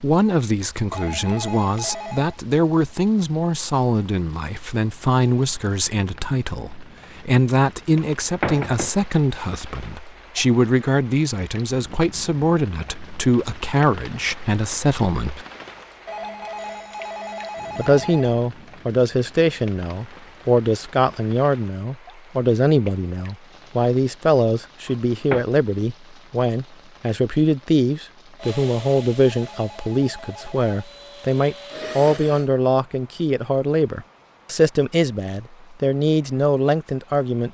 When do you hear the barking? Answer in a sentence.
You can't hear the barking here.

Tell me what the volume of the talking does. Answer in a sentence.
The loudness of the talking stays about the same.